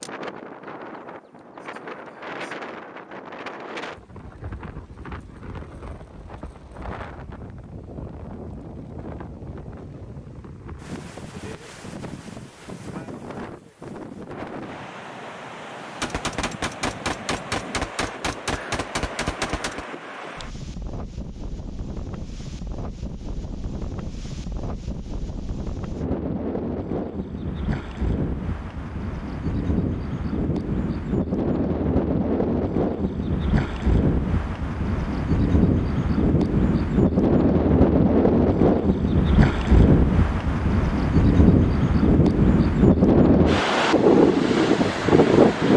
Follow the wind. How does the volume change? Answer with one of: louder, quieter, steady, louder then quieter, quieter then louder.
louder.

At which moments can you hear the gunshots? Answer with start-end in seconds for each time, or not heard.
16.0-19.9.